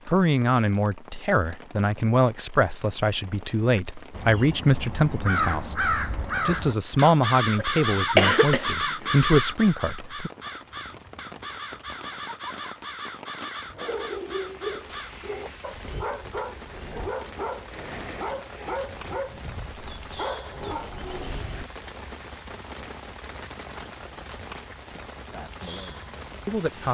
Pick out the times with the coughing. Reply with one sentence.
The coughing can be heard from 7.5 to 9.2 s.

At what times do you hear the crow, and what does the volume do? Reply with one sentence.
The crow can be heard from 3.8 to 15.2 s, getting quieter.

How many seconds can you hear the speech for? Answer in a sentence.
You can hear the speech for 12 seconds altogether.